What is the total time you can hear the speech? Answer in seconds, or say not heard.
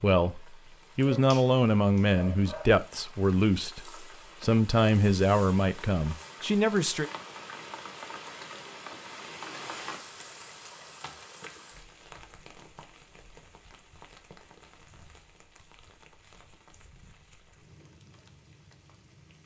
7 s.